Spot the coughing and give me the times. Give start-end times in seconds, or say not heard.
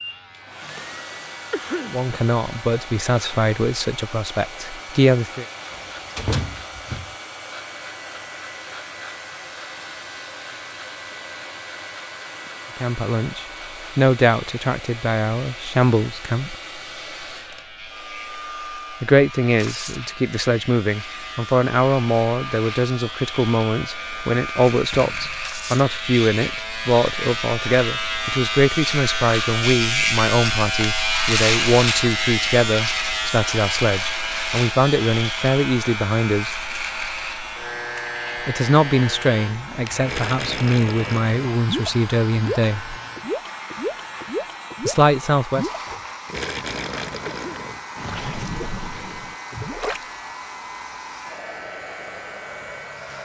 1.5-2.0, 47.2-47.8.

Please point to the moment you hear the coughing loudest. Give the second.
2 s.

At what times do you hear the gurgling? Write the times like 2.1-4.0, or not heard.
40.0-50.0.